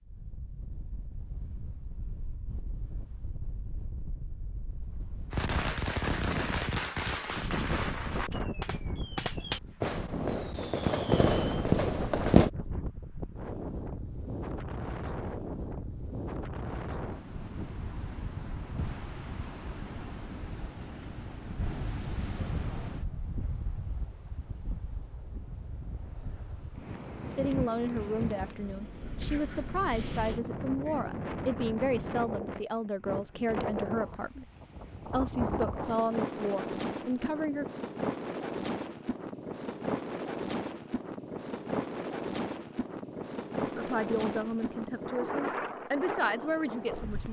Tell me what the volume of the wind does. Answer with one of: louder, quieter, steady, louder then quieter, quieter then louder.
louder.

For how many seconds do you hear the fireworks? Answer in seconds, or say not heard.
7 s.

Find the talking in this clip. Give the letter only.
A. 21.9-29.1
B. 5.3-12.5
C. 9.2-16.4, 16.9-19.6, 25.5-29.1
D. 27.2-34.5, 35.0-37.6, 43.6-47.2
D.